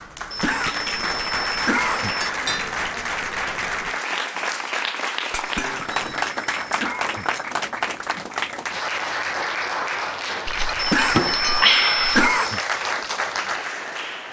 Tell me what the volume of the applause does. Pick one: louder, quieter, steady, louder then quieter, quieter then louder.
steady.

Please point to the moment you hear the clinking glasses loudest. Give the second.
12 s.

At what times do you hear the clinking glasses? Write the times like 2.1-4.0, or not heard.
2.2-2.8, 5.3-6.2, 10.4-12.3.